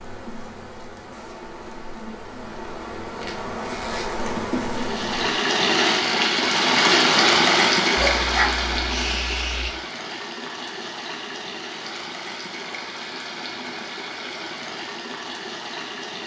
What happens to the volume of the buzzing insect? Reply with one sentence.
The volume of the buzzing insect goes up.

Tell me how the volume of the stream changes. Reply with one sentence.
The volume of the stream goes down.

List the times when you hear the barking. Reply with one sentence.
You can hear the barking from 8.0 to 9.8 s.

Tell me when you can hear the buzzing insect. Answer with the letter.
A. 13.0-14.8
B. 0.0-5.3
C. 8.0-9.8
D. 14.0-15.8
B.